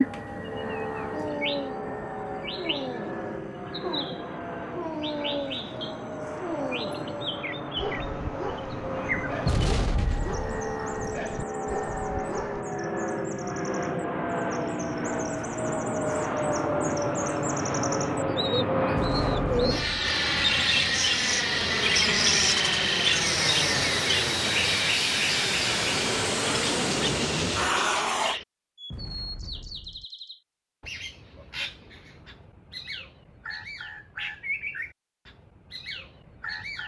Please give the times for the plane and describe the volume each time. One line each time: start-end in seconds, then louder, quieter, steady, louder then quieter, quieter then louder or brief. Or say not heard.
0.0-28.4 louder.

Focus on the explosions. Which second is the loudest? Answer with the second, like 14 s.
10 s.